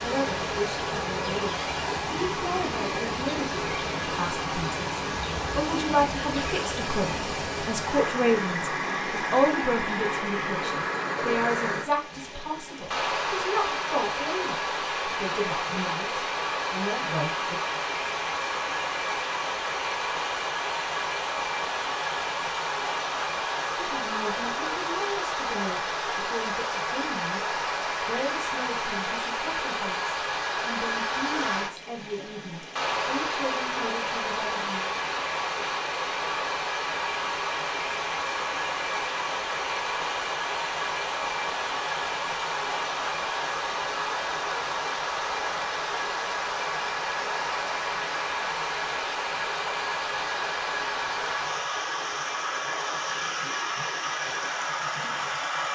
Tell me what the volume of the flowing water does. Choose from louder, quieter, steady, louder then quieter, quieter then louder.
steady.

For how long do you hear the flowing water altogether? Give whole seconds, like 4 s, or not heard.
56 s.